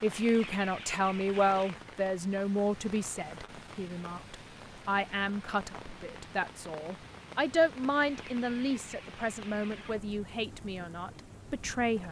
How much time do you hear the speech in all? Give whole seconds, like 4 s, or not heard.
12 s.